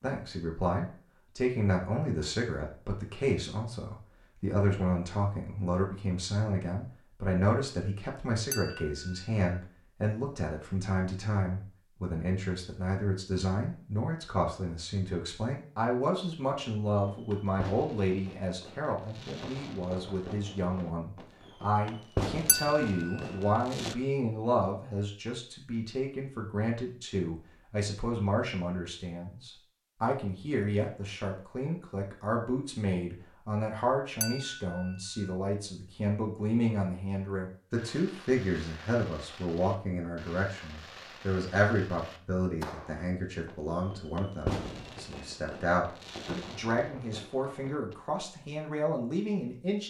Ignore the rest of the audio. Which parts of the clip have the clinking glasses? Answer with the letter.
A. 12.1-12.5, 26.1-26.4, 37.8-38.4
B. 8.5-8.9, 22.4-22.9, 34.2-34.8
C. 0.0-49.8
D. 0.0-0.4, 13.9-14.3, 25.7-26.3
B.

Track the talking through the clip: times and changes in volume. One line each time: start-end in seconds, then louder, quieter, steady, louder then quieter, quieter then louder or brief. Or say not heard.
0.0-49.8 steady.